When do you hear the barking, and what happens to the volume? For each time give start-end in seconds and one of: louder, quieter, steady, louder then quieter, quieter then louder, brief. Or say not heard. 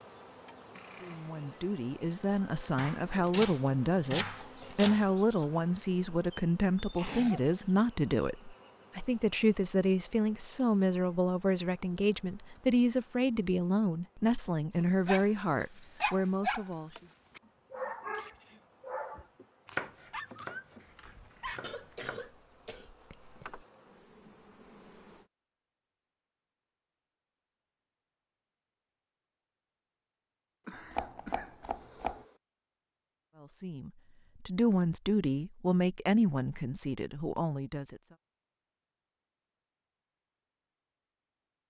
15.1-16.7 brief
17.4-21.6 quieter then louder.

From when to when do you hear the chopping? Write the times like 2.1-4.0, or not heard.
2.8-5.0, 19.6-20.6, 21.5-22.2, 30.7-32.2.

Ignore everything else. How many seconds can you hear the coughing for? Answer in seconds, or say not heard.
4 s.